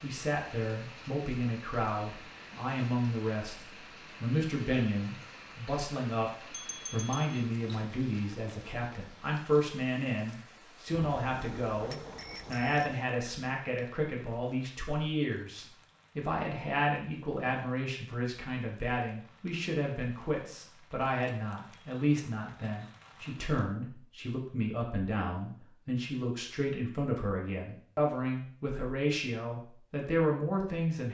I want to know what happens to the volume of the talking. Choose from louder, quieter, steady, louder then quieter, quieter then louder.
steady.